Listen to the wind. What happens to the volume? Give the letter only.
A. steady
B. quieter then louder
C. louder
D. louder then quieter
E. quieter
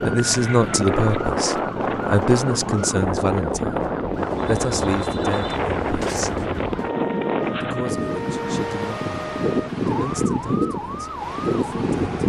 A.